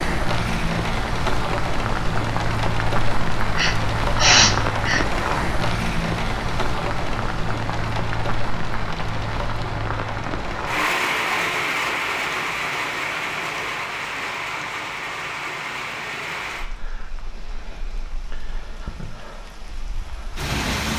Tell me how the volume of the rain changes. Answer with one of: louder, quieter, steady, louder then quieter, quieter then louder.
quieter.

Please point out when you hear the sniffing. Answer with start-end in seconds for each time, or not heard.
3.5-5.0.